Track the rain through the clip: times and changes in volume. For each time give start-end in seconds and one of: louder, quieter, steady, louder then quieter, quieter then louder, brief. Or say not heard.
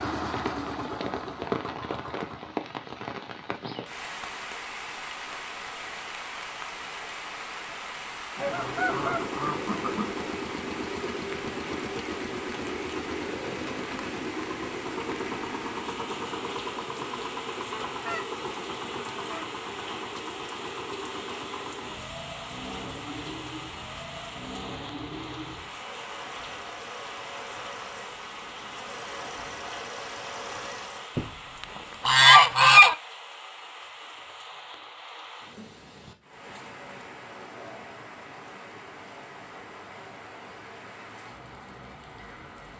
0.0-42.7 quieter.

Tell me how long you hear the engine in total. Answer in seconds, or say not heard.
26 s.